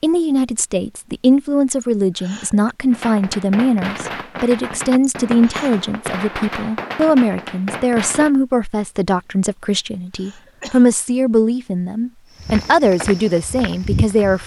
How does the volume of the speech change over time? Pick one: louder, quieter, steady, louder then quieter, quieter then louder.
steady.